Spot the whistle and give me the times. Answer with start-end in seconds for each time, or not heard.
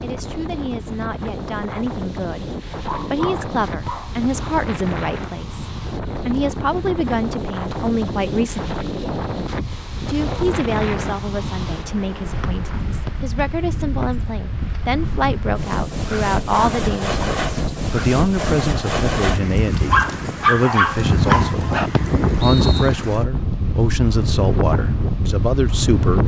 3.2-3.9, 12.4-13.1, 21.3-22.9.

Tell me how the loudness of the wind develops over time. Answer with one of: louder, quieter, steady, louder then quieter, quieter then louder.
louder.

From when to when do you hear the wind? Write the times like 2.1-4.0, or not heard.
0.0-26.2.